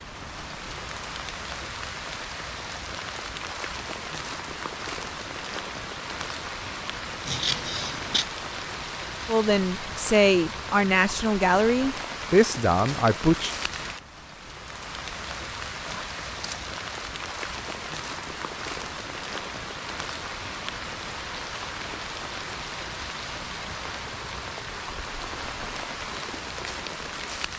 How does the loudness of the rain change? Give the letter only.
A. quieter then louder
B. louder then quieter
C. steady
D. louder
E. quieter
C.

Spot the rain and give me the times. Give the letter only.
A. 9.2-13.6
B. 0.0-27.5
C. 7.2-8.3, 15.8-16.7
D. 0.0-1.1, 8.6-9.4
B.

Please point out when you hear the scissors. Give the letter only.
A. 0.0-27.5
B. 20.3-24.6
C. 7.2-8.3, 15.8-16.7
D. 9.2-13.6
C.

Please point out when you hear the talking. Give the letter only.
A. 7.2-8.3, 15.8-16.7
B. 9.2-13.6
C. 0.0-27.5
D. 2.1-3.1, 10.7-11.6
B.